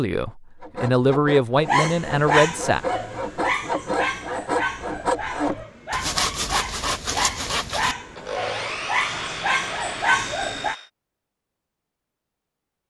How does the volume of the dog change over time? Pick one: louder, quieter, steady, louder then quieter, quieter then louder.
quieter then louder.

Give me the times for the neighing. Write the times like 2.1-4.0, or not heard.
not heard.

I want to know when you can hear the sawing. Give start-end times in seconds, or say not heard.
0.6-10.9.